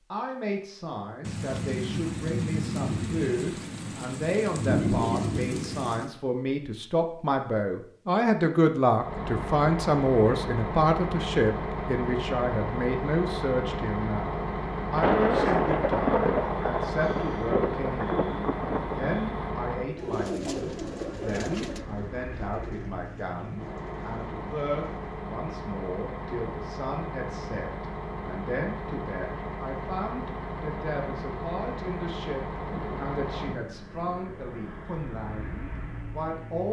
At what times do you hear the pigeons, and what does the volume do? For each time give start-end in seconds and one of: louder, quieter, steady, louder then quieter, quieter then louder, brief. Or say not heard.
19.9-25.1 quieter.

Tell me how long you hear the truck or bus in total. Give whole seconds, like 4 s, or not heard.
28 s.